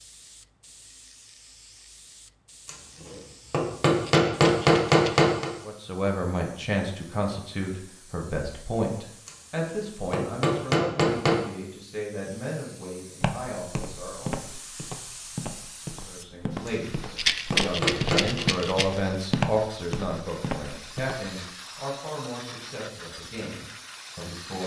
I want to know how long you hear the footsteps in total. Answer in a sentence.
The footsteps can be heard for 8 seconds in total.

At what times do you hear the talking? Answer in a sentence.
The talking can be heard from 5.7 to 14.4 s and from 15.9 to 24.6 s.